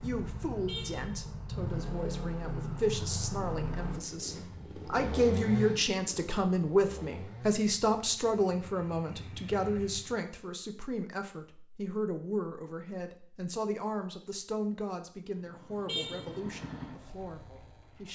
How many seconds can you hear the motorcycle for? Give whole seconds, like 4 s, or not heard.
13 s.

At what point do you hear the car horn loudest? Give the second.
16 s.